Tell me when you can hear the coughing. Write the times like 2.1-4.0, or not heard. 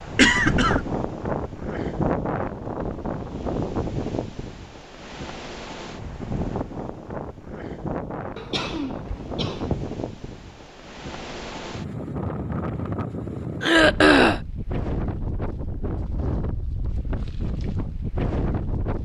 0.1-0.8, 8.3-9.9, 13.6-14.4.